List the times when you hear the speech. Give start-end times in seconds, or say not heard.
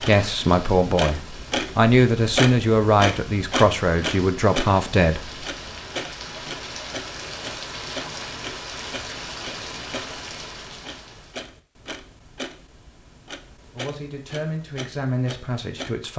0.0-5.3, 13.7-16.1.